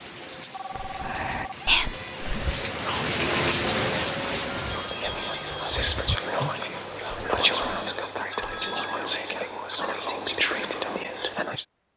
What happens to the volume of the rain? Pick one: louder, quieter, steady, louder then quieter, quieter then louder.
louder then quieter.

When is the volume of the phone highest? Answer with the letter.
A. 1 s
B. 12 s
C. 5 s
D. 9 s
C.